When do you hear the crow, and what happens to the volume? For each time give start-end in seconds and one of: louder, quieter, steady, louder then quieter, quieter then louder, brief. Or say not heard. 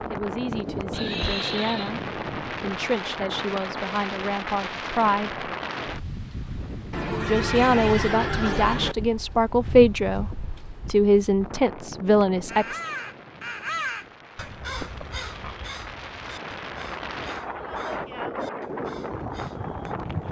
12.4-19.9 quieter.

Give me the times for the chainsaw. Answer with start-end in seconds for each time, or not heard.
not heard.